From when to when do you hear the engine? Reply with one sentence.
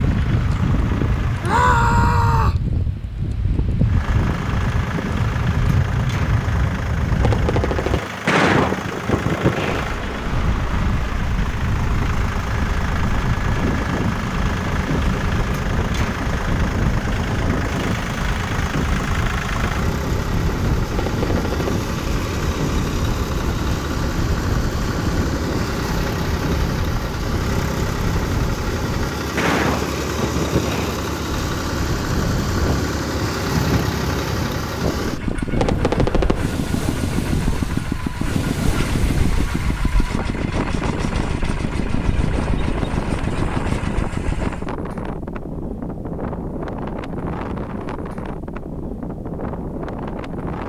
The engine can be heard from 0.0 to 1.7 s and from 3.8 to 44.7 s.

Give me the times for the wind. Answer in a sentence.
You can hear the wind from 0.0 to 50.6 s.